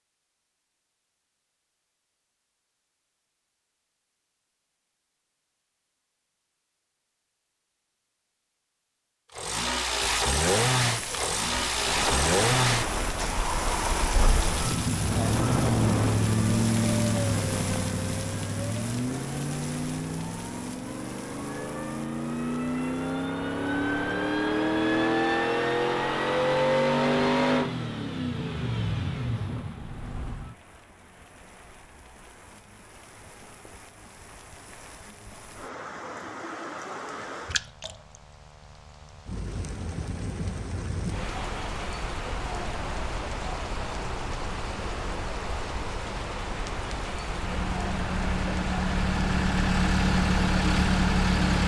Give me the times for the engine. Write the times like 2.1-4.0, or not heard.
9.3-30.6, 47.2-51.6.